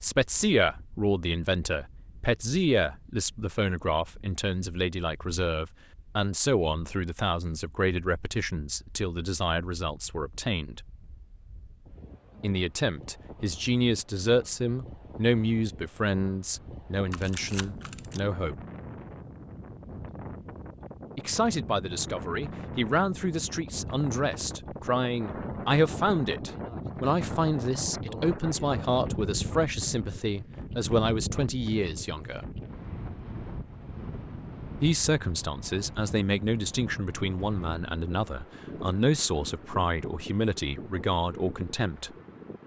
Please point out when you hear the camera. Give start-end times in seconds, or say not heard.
17.1-18.2.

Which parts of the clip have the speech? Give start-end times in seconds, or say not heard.
0.0-10.8, 12.4-18.6, 21.1-32.5, 34.8-42.1.